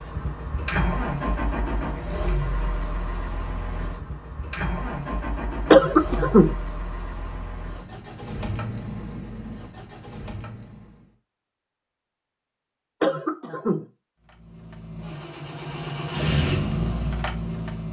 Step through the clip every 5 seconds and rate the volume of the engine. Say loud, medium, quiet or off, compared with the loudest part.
loud, medium, quiet, loud.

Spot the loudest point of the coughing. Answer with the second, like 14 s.
6 s.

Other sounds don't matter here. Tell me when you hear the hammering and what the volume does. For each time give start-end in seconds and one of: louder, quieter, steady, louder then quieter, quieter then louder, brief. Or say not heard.
not heard.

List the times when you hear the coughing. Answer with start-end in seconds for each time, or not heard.
5.7-6.5, 13.0-13.8.